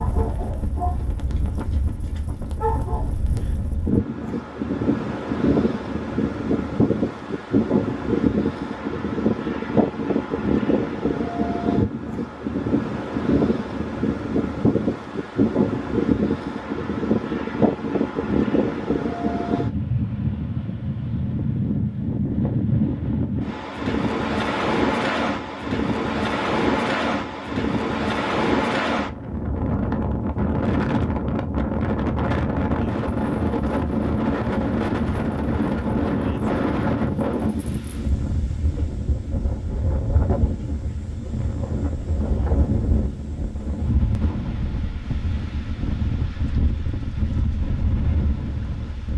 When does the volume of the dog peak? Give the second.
3 s.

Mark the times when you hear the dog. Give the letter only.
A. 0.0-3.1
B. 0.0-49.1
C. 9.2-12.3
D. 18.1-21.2
A.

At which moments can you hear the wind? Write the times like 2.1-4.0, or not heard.
0.0-49.1.